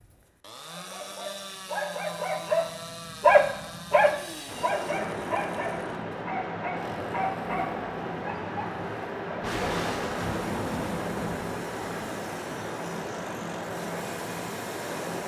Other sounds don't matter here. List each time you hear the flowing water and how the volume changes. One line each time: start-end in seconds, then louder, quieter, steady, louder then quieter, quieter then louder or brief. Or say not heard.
4.0-15.2 steady.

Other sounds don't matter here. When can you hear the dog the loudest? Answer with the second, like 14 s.
3 s.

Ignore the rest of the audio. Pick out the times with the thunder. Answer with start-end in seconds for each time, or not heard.
9.4-11.9.